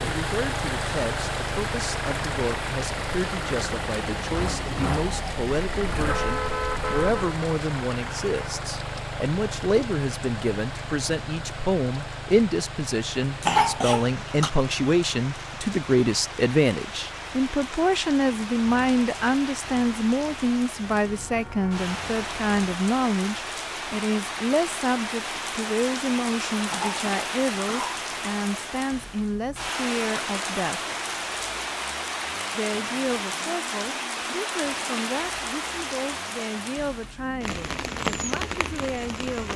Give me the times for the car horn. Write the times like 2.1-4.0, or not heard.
5.6-7.3, 21.1-22.6.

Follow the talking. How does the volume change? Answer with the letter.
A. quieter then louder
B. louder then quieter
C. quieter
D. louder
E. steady
B.